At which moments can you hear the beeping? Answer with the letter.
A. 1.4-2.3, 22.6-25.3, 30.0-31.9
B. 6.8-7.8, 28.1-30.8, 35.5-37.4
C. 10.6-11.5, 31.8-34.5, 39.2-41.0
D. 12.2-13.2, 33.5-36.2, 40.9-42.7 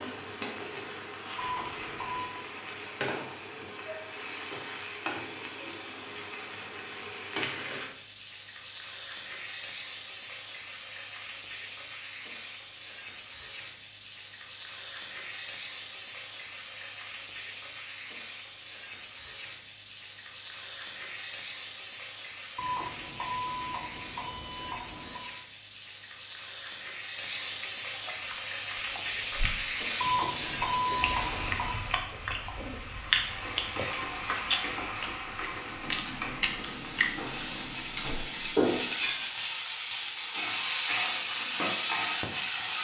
A.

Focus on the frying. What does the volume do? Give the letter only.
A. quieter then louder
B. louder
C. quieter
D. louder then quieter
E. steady
B.